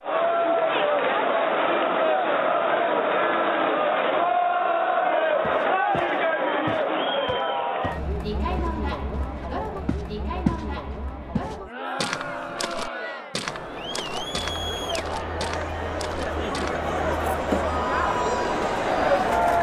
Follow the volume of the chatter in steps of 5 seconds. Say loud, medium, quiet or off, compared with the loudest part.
loud, loud, medium, loud.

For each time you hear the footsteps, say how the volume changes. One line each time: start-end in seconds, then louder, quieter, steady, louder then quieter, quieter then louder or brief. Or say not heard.
5.4-16.9 louder then quieter.